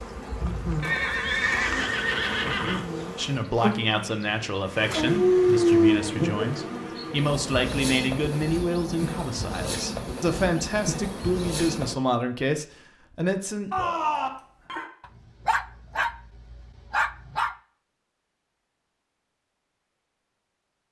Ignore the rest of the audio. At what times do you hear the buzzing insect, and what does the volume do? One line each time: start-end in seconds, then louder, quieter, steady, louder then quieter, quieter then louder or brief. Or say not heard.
0.0-11.9 steady.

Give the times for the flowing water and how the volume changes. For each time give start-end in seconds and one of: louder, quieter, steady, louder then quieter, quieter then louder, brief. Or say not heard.
not heard.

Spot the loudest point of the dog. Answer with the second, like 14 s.
6 s.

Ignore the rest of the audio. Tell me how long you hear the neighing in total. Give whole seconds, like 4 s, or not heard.
3 s.